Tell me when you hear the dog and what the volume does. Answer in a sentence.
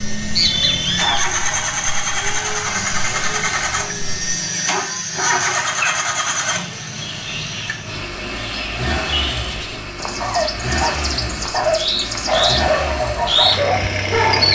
You can hear the dog from 10.2 to 14.5 s, at a steady volume.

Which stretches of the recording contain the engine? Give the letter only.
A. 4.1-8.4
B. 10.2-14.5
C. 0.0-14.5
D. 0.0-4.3
C.